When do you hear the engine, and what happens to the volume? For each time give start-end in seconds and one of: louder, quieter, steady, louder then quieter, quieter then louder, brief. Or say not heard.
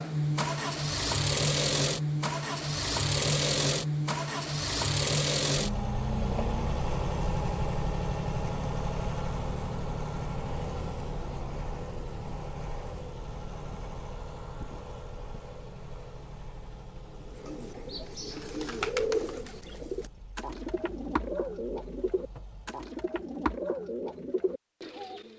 0.0-22.8 quieter.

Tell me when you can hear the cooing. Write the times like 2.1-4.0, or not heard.
17.1-25.3.